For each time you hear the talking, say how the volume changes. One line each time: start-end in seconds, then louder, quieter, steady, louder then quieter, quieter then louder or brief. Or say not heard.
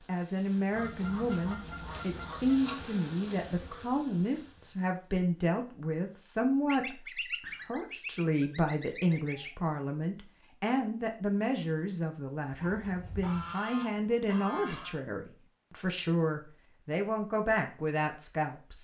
0.1-18.7 steady.